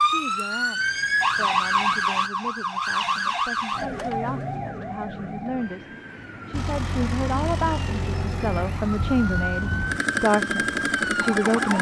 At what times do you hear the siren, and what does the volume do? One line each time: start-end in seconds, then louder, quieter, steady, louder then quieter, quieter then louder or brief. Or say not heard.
0.0-11.7 quieter then louder.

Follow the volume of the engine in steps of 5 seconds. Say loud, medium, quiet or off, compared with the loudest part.
off, medium, loud.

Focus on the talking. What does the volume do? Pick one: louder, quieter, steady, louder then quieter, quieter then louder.
louder.